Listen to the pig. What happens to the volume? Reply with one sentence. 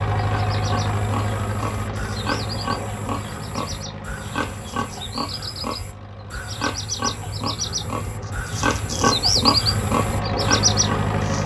The volume of the pig goes up.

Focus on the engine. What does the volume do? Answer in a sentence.
The volume of the engine goes down, then up.